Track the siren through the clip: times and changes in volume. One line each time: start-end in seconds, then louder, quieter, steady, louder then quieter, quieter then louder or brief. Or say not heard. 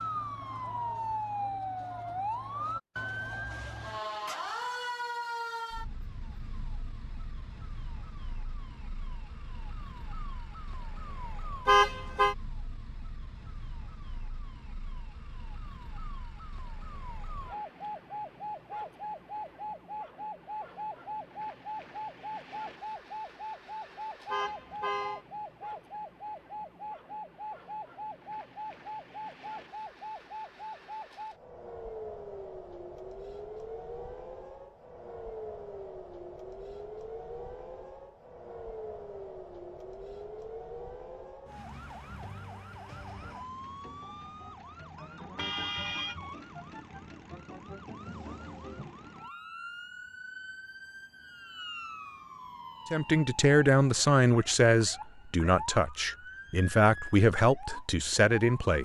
0.0-58.7 quieter.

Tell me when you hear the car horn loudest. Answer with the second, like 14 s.
12 s.